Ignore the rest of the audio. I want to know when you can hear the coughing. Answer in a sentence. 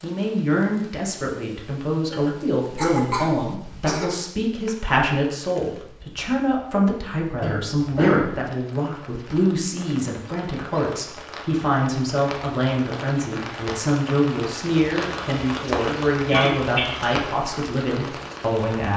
You can hear the coughing from 2.1 to 4.0 s, from 7.4 to 8.4 s and from 16.2 to 17.0 s.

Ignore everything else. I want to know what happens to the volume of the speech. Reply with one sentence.
The loudness of the speech stays about the same.